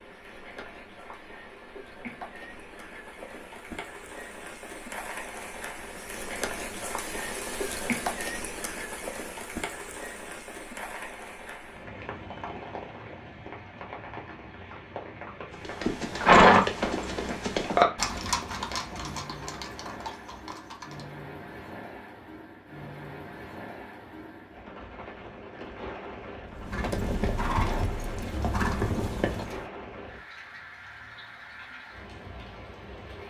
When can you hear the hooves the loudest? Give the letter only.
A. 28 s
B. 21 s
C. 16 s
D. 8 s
C.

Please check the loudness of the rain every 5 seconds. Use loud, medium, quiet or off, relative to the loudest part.
medium, loud, medium, medium, medium, medium, medium.